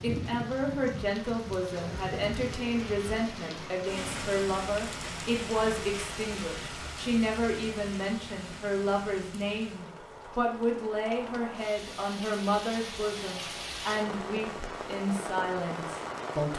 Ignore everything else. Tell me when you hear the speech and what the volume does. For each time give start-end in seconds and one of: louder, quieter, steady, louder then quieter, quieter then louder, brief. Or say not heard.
0.0-16.5 steady.